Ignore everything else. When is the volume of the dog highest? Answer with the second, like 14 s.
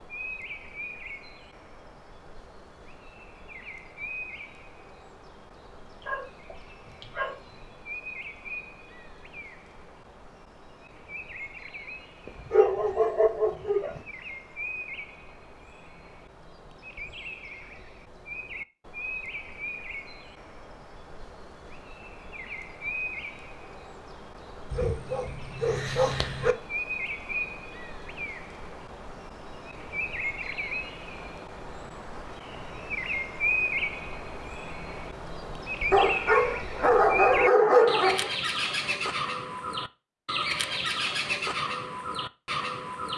38 s.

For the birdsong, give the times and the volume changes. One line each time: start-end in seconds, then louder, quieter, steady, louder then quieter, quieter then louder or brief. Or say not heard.
0.0-43.1 louder.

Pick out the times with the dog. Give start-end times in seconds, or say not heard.
6.0-7.4, 12.2-14.0, 24.7-26.6, 35.9-38.3.